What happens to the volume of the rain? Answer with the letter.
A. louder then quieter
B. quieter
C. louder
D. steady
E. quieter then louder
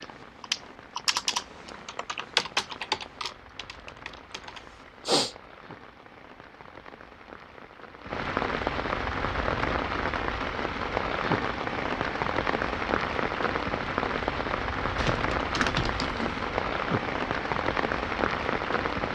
C.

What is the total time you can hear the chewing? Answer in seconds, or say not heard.
not heard.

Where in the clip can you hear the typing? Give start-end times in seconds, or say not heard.
0.0-5.3, 14.9-16.4.